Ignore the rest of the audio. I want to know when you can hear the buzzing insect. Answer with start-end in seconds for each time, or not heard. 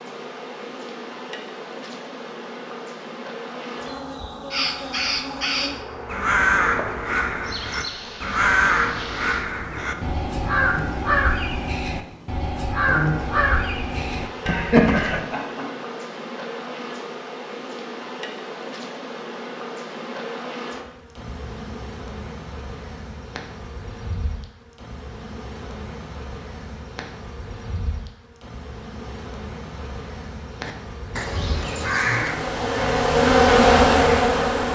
0.0-34.7.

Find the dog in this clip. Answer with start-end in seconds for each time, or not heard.
not heard.